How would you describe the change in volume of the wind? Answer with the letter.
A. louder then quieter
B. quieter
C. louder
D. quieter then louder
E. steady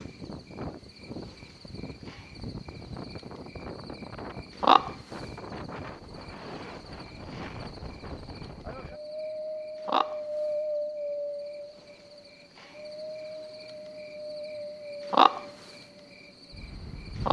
A.